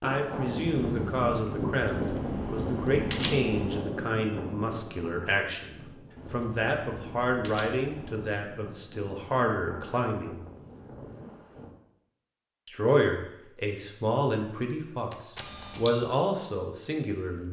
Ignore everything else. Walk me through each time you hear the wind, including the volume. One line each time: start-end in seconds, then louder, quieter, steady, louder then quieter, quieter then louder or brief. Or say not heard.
0.0-11.8 quieter.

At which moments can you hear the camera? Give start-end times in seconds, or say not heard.
1.8-3.9, 6.2-8.2, 15.1-15.9.